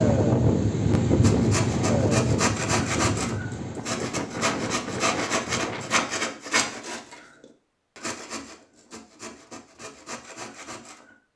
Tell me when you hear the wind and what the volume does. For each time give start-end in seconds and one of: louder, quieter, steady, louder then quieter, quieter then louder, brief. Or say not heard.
0.0-6.3 quieter.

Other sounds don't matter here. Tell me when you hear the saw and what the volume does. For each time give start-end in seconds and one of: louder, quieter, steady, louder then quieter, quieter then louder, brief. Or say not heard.
1.2-11.2 quieter.